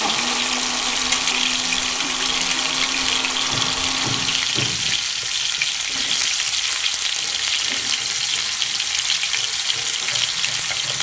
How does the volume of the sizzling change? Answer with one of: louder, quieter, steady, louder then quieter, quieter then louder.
steady.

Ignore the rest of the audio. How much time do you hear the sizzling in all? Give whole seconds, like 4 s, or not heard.
11 s.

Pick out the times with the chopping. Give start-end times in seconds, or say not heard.
not heard.